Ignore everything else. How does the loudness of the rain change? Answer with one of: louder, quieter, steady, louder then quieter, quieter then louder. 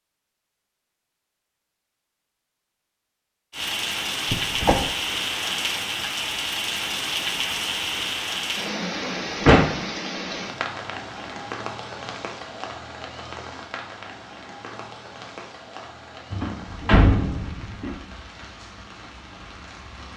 quieter.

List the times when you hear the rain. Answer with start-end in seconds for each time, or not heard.
3.5-20.1.